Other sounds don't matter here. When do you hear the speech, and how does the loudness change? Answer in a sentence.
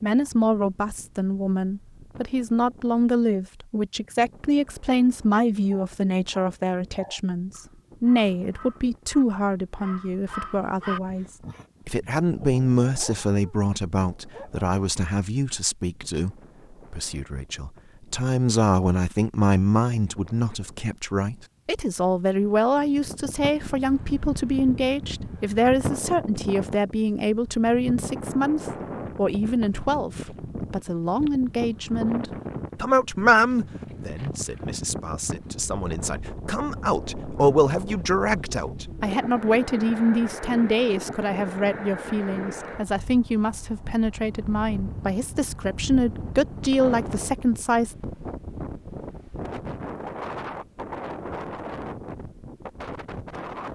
The speech can be heard from 0.0 to 11.2 s, at a steady volume; and from 11.8 to 48.0 s, at a steady volume.